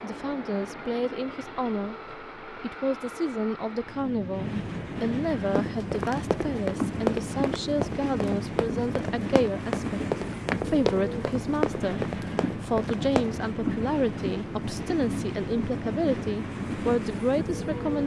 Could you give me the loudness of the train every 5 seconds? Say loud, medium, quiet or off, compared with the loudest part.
medium, loud, loud, loud.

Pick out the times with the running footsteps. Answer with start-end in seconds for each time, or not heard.
5.5-13.3.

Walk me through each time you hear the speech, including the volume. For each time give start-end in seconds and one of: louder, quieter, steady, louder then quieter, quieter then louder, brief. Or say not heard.
0.0-18.0 steady.